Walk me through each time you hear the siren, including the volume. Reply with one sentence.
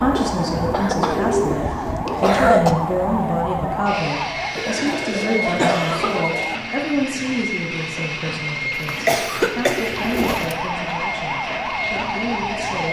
The siren can be heard from 0.0 to 4.5 s, at a steady volume; and briefly from 9.9 to 12.8 s.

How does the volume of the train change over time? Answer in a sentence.
The volume of the train stays about the same.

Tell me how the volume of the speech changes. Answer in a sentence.
The volume of the speech goes down.